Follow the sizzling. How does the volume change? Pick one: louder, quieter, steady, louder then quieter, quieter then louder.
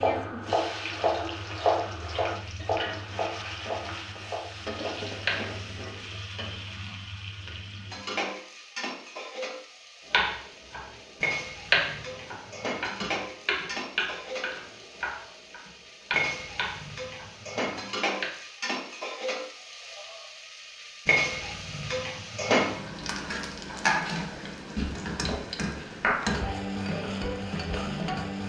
louder.